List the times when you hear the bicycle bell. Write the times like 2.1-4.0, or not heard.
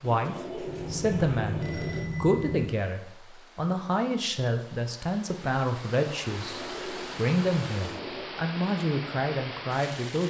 0.7-2.7.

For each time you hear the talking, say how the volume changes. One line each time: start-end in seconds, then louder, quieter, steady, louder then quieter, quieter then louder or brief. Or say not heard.
0.0-1.6 brief
2.2-10.2 steady.